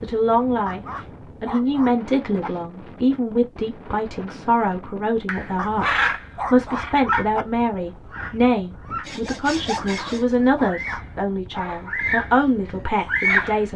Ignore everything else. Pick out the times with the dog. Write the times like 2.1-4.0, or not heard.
0.6-2.5, 5.5-7.5, 9.8-11.6.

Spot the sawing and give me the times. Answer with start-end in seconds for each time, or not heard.
9.0-10.4.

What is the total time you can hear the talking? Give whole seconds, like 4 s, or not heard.
13 s.